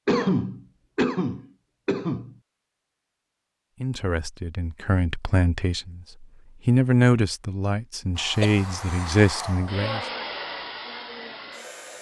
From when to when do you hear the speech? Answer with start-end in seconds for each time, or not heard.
3.8-10.1.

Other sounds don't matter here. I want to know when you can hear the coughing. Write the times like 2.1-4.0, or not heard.
0.1-2.4, 8.4-9.1.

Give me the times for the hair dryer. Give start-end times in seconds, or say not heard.
8.2-11.9.